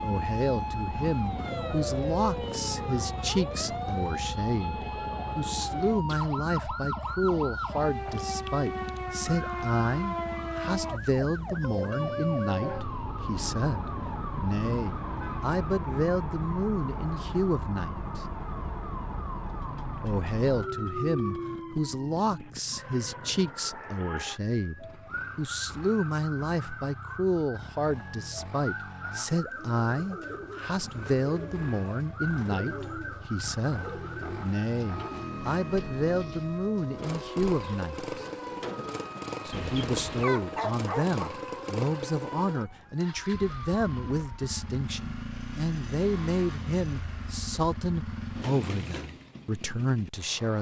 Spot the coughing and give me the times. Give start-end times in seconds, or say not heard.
not heard.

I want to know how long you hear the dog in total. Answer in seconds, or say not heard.
2 s.